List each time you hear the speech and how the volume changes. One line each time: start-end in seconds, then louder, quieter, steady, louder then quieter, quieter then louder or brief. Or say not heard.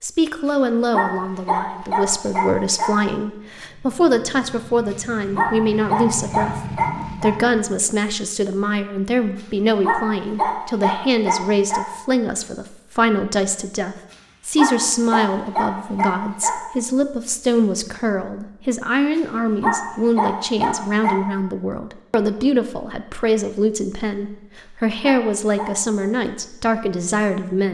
0.0-27.6 steady.